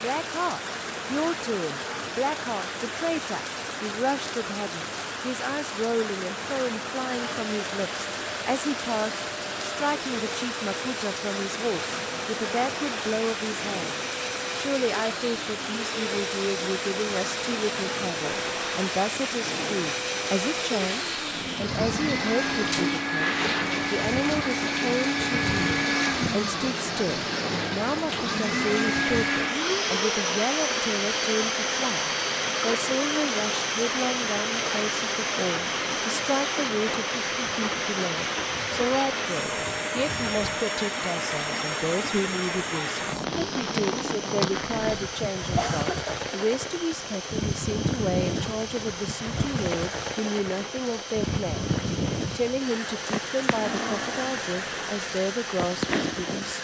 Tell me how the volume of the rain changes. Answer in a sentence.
The loudness of the rain stays about the same.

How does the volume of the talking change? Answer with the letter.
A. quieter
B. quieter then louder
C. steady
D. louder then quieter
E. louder
C.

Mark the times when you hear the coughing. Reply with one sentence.
You can hear the coughing from 45.5 to 46.2 s.